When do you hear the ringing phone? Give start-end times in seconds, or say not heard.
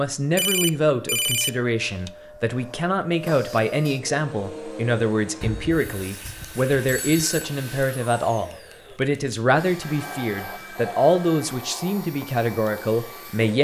0.3-2.1, 5.4-7.5, 9.8-11.4.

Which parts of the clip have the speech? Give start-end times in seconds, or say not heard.
0.0-13.5.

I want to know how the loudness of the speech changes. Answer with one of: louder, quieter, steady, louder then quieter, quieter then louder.
steady.